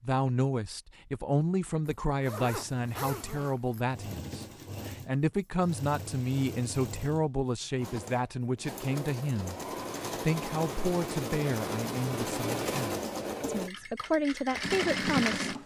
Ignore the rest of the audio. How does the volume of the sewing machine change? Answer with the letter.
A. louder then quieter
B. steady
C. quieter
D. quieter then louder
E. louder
E.